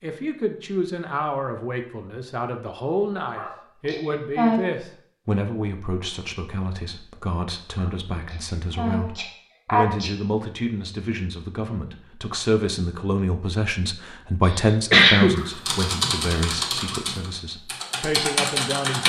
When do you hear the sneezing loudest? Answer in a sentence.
The loudest moment of the sneezing is at 15 seconds.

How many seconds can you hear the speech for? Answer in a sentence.
You can hear the speech for 19 seconds altogether.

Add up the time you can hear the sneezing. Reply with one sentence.
You can hear the sneezing for 5 seconds altogether.